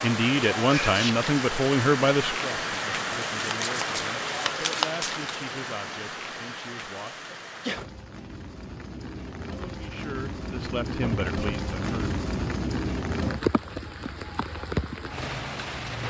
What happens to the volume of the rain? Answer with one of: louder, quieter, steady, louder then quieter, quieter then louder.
quieter then louder.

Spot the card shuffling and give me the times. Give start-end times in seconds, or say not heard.
3.4-5.2.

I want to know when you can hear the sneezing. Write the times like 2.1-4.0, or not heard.
0.7-1.1, 7.3-7.9, 10.8-11.3.